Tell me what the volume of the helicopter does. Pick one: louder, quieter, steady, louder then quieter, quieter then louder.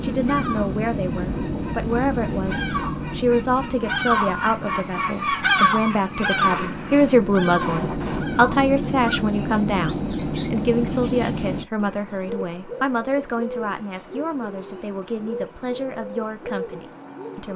quieter then louder.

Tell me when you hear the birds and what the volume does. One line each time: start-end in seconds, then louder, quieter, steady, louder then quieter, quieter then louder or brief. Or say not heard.
0.1-17.5 louder then quieter.